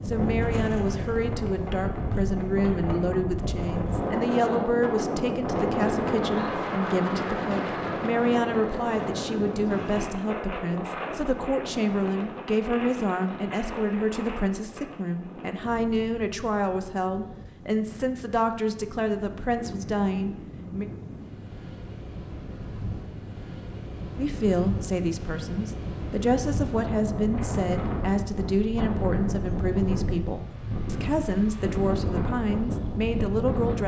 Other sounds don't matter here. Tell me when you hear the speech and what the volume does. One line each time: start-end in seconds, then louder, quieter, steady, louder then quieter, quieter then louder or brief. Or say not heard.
0.1-20.9 steady
24.1-33.8 steady.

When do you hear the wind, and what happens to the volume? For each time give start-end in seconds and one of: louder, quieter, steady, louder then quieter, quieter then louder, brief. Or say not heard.
0.0-33.8 quieter then louder.